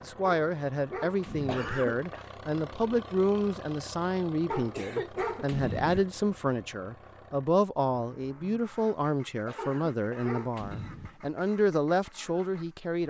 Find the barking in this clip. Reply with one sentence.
You can hear the barking from 0.2 to 1.9 s, from 4.5 to 6.1 s and from 9.6 to 11.2 s.